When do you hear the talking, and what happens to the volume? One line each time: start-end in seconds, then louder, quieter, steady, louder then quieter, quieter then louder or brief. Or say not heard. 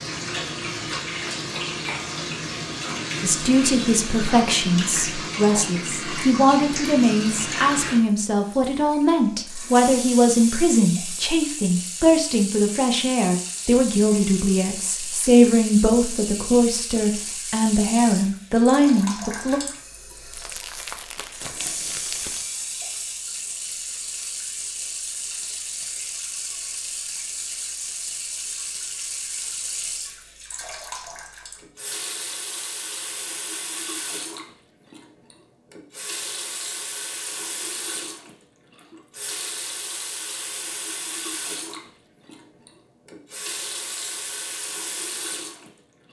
3.2-19.6 steady.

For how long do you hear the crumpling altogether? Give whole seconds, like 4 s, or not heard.
2 s.